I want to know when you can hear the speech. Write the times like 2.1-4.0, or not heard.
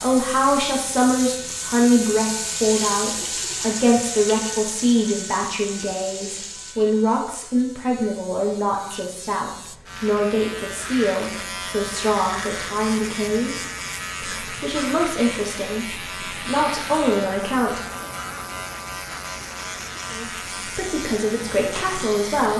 0.0-18.1, 20.1-22.5.